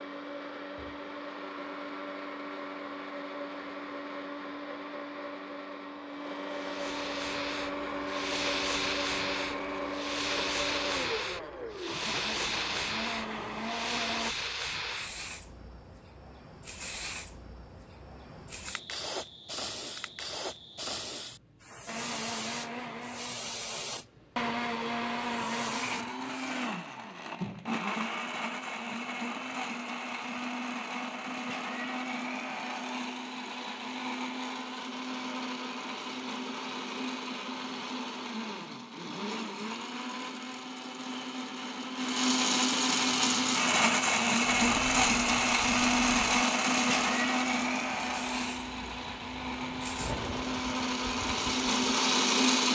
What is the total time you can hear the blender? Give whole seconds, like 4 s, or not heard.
45 s.